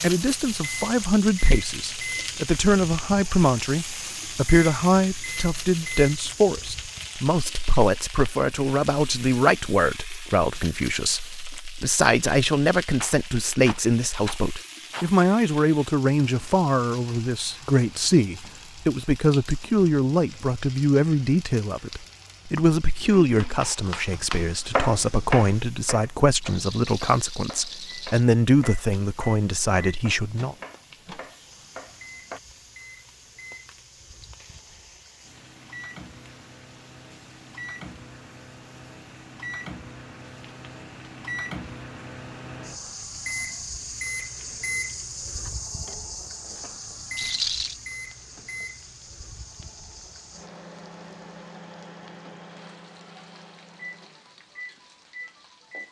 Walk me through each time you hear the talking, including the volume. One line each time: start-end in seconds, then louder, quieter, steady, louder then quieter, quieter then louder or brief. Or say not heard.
0.0-30.6 steady.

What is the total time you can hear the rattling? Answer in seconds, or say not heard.
5 s.